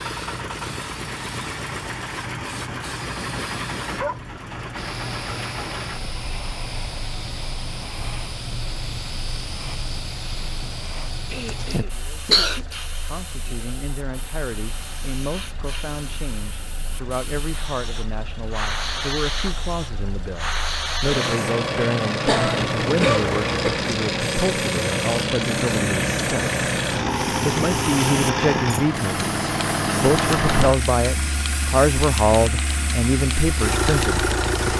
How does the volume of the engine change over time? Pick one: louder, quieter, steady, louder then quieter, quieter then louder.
quieter then louder.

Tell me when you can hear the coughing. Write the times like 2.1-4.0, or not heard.
11.3-12.8, 22.2-23.7.